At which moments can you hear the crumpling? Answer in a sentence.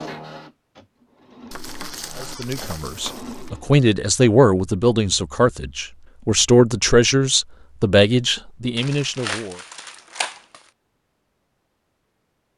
The crumpling can be heard from 1.5 to 3.5 s and from 8.8 to 10.6 s.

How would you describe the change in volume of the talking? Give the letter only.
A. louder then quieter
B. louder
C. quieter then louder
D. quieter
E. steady
E.